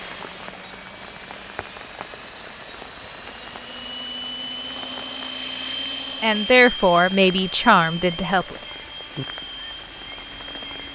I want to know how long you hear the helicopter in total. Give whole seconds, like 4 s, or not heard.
11 s.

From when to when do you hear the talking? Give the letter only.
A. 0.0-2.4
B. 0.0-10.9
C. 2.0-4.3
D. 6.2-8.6
D.